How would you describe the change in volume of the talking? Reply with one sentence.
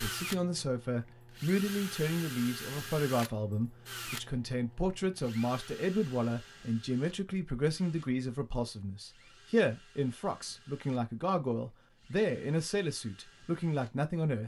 The volume of the talking stays about the same.